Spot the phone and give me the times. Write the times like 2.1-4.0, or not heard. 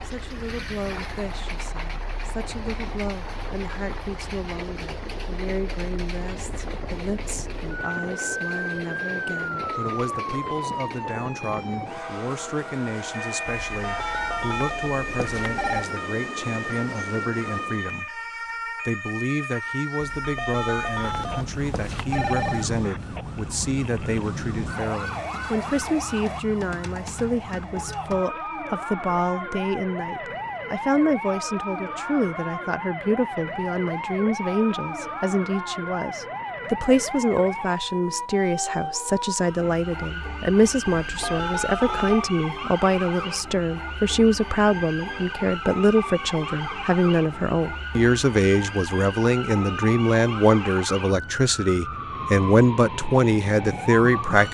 13.4-15.8, 20.0-22.7, 41.0-42.2.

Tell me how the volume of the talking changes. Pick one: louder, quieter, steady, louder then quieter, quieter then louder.
louder.